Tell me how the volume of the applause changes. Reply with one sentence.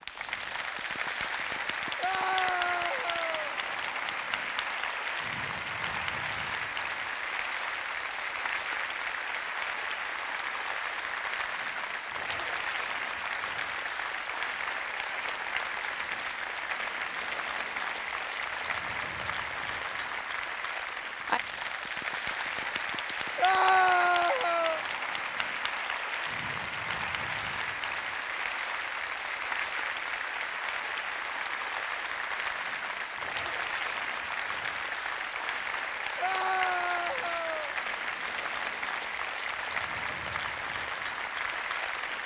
The loudness of the applause stays about the same.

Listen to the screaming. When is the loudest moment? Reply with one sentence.
The loudest moment of the screaming is at 24 seconds.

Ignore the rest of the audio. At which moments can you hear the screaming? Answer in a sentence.
You can hear the screaming from 1.9 to 3.5 s, from 23.4 to 24.8 s and from 36.1 to 37.8 s.